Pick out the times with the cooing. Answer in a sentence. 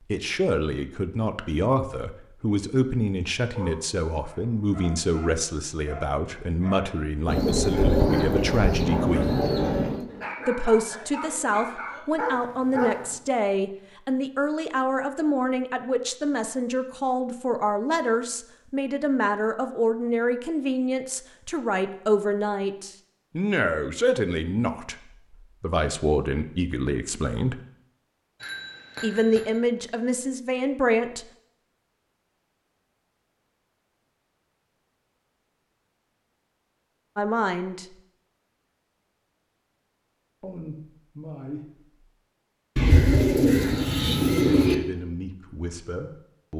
You can hear the cooing from 7.2 to 10.1 s and from 42.8 to 44.8 s.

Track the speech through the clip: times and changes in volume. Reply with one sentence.
You can hear the speech from 0.1 to 9.4 s, at a steady volume; from 10.4 to 27.6 s, at a steady volume; briefly from 29.0 to 31.2 s; briefly from 37.1 to 38.0 s; briefly from 40.4 to 41.8 s; and briefly from 44.6 to 46.5 s.